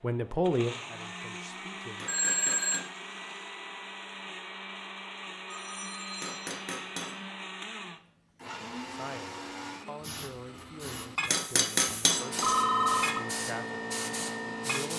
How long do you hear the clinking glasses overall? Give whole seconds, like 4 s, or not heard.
3 s.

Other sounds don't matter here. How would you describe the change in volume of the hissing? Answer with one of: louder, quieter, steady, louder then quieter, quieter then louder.
louder.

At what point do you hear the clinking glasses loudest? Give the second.
12 s.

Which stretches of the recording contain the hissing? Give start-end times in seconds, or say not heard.
10.0-14.9.